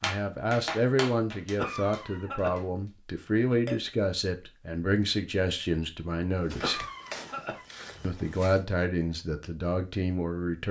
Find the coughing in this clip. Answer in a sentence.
The coughing can be heard from 1.6 to 2.6 s and from 6.6 to 7.7 s.